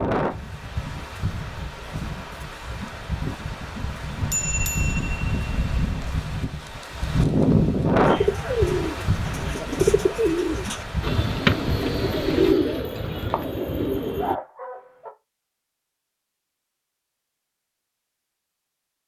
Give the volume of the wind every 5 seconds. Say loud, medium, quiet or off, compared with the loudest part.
medium, loud, medium, off.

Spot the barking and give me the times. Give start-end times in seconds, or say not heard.
14.2-15.1.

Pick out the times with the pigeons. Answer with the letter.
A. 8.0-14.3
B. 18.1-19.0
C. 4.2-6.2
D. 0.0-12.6
A.